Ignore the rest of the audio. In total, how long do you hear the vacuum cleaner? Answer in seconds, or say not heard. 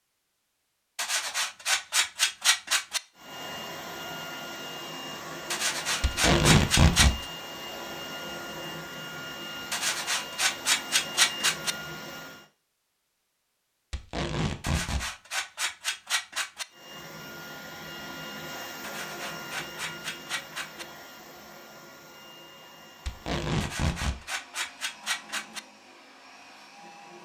20 s.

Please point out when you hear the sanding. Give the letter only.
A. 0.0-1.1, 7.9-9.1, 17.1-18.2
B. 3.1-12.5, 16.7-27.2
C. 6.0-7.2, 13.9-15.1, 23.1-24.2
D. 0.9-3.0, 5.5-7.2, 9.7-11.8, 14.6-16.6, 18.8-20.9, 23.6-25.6
D.